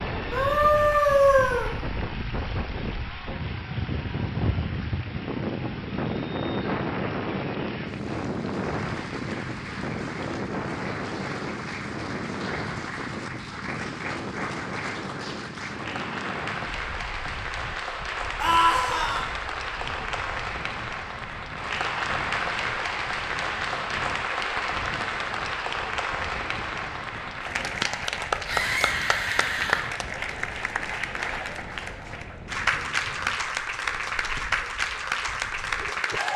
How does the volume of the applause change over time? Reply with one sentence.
The loudness of the applause goes up.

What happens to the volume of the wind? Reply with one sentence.
The loudness of the wind goes down.